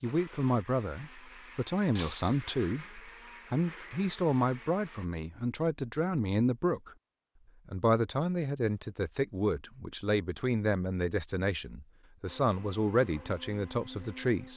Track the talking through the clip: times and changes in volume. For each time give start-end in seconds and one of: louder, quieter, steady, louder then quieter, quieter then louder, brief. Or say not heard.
0.0-7.0 steady
7.7-14.5 steady.